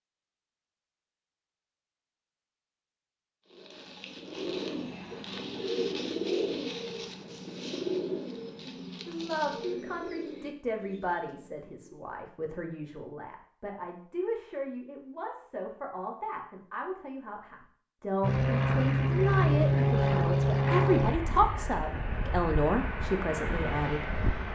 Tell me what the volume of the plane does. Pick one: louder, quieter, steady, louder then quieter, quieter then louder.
quieter.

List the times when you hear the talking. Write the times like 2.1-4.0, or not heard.
9.1-24.5.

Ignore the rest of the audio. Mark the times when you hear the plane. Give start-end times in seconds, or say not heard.
18.2-24.5.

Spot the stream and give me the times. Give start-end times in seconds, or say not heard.
not heard.